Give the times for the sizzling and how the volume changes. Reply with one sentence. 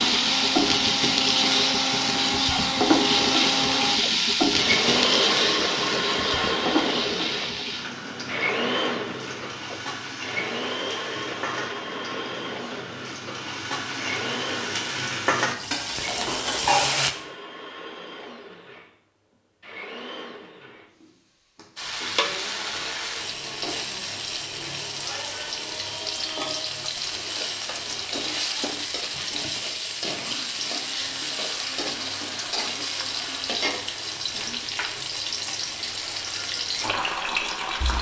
The sizzling can be heard from 0.0 to 17.1 s, getting quieter then louder; and from 21.8 to 37.9 s, at a steady volume.